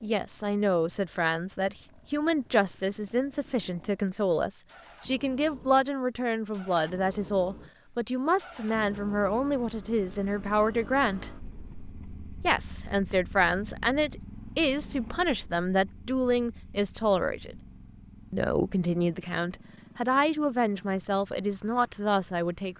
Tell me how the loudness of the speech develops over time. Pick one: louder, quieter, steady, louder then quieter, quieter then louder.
steady.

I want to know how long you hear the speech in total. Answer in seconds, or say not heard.
21 s.